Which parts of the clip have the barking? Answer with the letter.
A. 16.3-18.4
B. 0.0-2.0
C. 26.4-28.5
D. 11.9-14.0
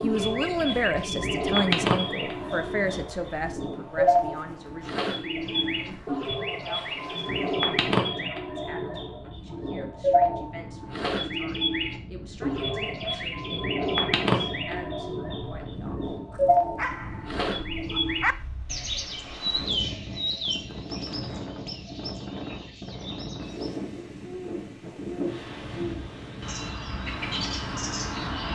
A.